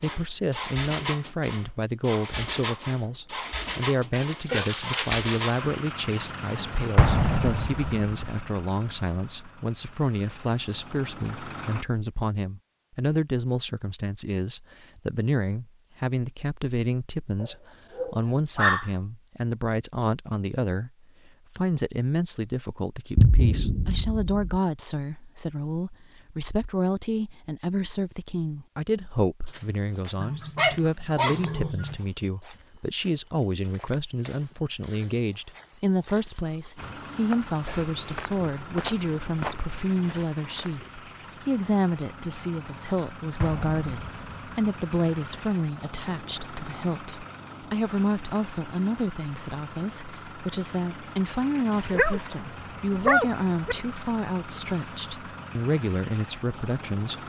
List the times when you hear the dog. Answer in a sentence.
The dog can be heard from 4.1 to 5.7 s, from 17.4 to 18.9 s, from 30.2 to 32.0 s and from 51.9 to 53.8 s.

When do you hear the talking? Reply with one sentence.
You can hear the talking from 0.0 to 57.2 s.